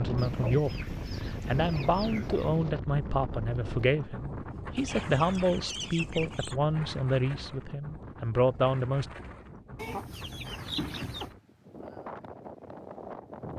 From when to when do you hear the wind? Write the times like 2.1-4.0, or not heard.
0.0-13.5.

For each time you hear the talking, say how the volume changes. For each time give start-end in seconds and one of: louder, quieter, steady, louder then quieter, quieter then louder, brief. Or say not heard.
0.0-9.1 steady.